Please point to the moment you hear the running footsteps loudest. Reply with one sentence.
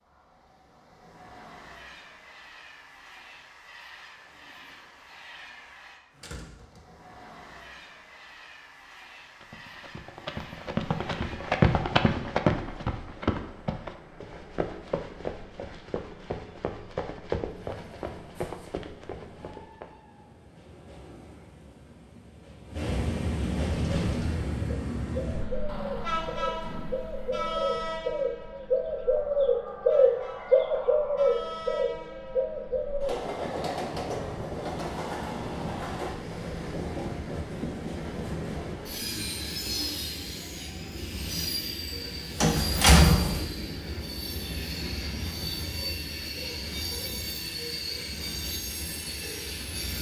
The volume of the running footsteps peaks at 12 seconds.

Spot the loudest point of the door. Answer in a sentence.
The loudest moment of the door is at 43 seconds.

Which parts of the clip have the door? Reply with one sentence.
The door can be heard from 6.2 to 7.0 s, from 25.6 to 27.4 s and from 42.4 to 43.5 s.